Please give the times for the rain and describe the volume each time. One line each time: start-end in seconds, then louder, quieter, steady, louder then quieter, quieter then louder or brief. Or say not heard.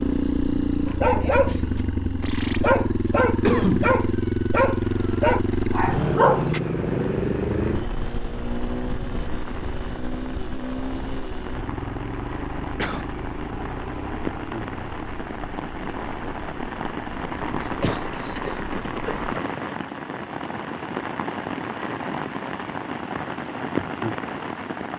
4.8-24.9 louder.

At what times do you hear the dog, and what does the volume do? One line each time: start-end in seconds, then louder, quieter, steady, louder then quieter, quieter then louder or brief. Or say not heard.
0.8-6.6 steady.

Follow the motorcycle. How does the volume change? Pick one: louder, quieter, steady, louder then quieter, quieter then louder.
quieter.